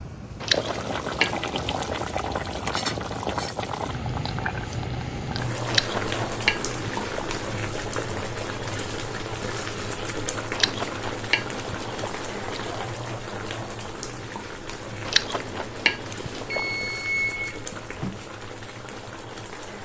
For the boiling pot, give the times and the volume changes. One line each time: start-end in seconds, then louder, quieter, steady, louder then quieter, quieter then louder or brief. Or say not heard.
0.0-19.7 quieter.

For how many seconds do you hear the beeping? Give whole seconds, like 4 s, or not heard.
2 s.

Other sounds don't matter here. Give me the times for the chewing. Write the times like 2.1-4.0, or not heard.
0.4-2.1, 5.7-7.4, 10.5-12.8, 15.1-16.9.